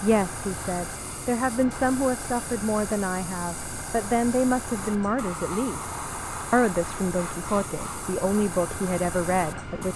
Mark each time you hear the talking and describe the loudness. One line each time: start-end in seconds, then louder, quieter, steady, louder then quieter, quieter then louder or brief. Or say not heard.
0.0-9.9 steady.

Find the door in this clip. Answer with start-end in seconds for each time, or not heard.
not heard.